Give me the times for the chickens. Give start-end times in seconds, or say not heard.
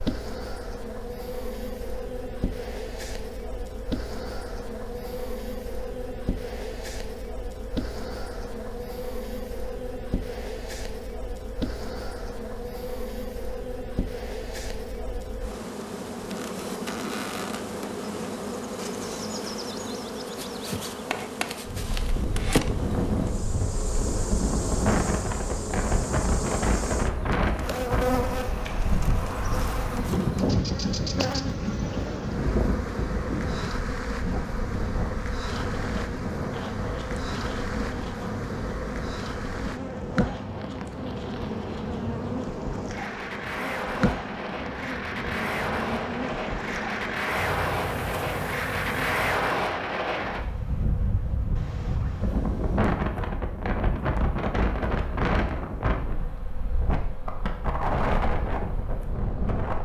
not heard.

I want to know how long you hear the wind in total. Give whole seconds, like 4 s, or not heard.
38 s.